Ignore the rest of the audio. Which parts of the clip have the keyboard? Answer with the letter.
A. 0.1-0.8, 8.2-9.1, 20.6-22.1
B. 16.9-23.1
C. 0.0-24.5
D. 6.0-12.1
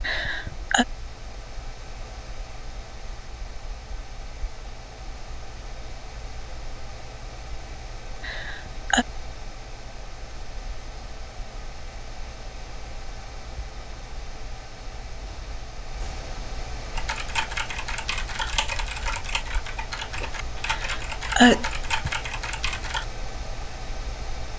B.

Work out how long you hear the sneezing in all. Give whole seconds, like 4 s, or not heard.
3 s.